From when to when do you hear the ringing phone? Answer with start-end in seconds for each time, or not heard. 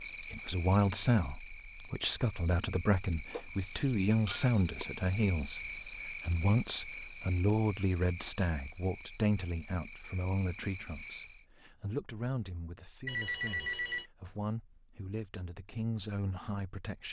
3.3-4.8, 13.1-14.1.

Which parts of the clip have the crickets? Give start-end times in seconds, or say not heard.
0.0-11.4.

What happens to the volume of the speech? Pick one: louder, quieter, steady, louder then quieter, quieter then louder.
quieter.